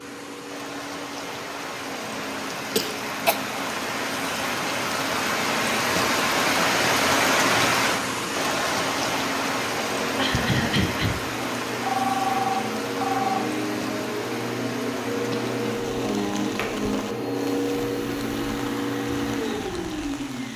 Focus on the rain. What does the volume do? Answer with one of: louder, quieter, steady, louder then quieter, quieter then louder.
louder then quieter.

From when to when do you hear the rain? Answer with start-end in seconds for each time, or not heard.
0.0-20.5.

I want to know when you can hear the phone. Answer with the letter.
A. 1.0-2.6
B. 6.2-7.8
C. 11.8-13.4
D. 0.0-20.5
C.